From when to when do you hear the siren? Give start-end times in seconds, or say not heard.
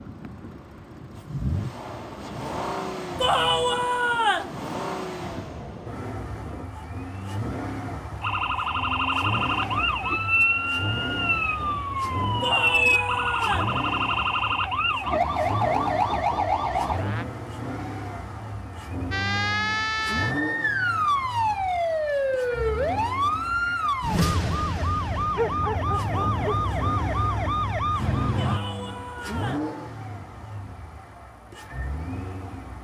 8.2-17.2, 19.1-28.6.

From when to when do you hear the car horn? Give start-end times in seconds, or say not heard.
not heard.